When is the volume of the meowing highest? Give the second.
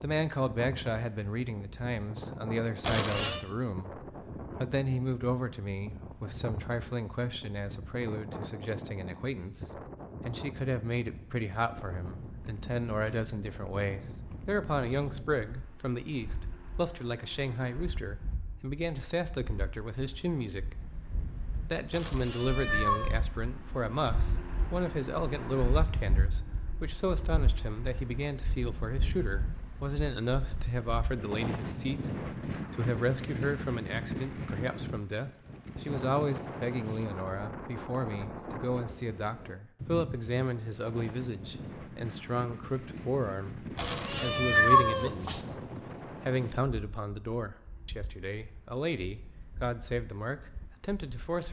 45 s.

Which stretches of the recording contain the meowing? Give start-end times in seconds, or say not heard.
2.8-3.4, 21.9-23.2, 43.8-45.5.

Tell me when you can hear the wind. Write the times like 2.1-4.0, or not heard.
0.0-51.4.